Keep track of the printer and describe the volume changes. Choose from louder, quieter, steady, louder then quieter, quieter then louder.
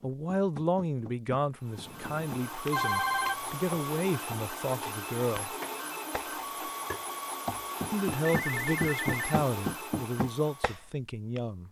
steady.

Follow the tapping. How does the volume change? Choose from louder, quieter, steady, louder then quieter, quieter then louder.
louder.